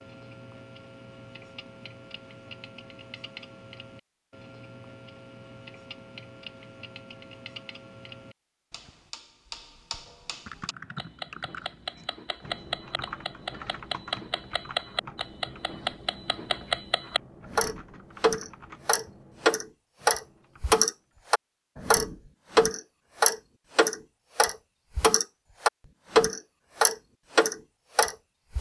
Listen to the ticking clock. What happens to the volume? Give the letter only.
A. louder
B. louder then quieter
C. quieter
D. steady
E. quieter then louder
A.